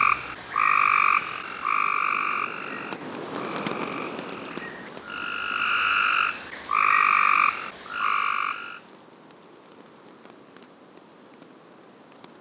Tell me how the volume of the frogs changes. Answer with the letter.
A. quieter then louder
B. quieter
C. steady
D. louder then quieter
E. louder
A.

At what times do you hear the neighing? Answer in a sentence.
You can't hear the neighing here.